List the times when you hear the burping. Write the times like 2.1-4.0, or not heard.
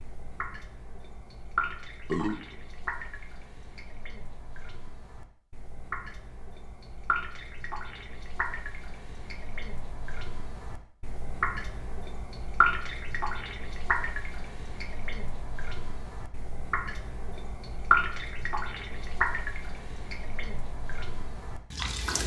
2.0-2.5.